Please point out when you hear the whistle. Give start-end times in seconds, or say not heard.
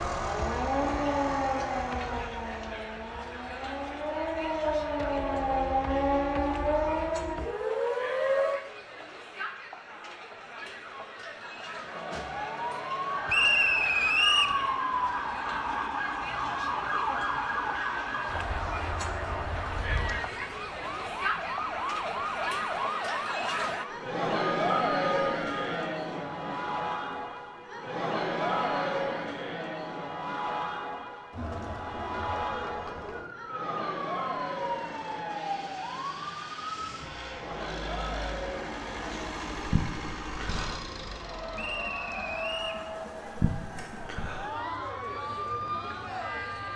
13.2-14.6, 41.5-42.9.